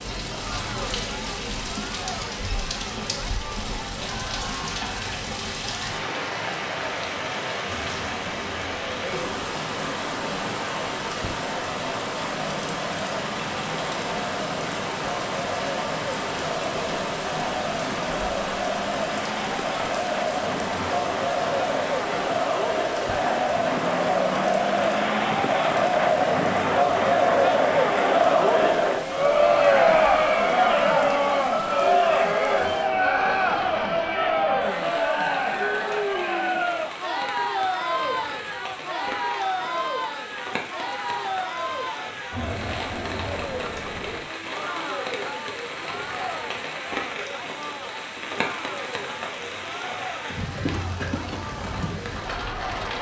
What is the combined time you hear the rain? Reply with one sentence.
The rain can be heard for 53 seconds in total.